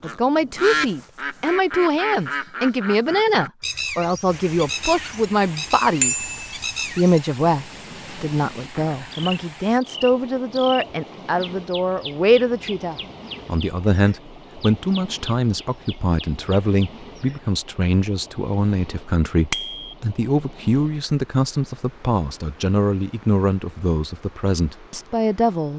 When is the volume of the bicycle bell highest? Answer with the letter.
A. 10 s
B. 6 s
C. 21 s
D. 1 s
B.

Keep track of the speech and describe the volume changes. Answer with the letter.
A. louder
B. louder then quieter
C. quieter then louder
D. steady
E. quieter
D.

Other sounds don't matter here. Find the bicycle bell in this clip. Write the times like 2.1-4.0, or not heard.
6.0-6.5, 8.8-9.3, 19.5-19.9.